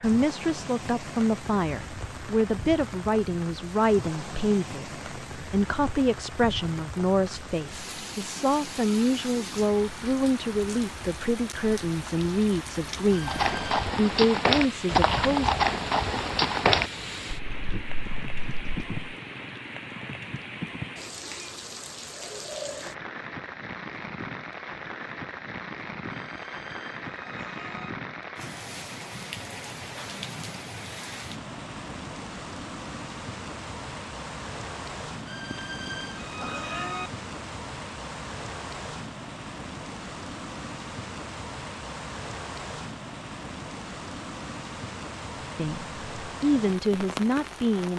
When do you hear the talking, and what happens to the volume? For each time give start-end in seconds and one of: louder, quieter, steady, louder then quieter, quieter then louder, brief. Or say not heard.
0.0-15.5 steady
45.5-47.9 brief.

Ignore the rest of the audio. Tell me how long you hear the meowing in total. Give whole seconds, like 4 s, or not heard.
4 s.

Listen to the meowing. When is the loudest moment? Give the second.
37 s.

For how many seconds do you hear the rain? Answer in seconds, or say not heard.
48 s.